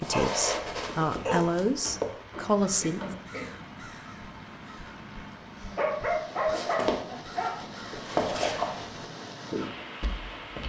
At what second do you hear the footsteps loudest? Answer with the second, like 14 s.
8 s.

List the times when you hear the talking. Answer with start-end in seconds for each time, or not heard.
0.0-3.1.